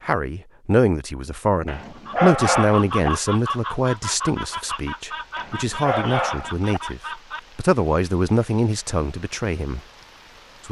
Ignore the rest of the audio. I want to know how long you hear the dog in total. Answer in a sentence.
The dog can be heard for 3 seconds in total.